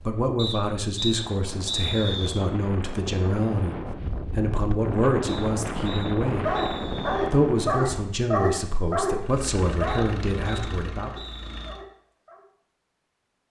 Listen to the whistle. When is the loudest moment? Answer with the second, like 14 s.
2 s.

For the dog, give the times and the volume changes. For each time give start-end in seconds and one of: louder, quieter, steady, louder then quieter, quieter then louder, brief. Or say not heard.
6.4-12.4 quieter.